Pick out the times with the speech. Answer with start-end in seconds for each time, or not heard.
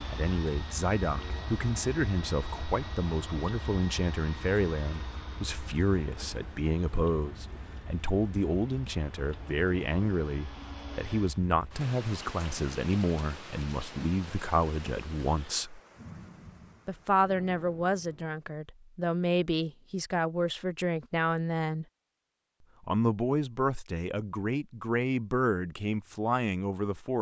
0.0-15.8, 16.9-21.9, 22.8-27.1.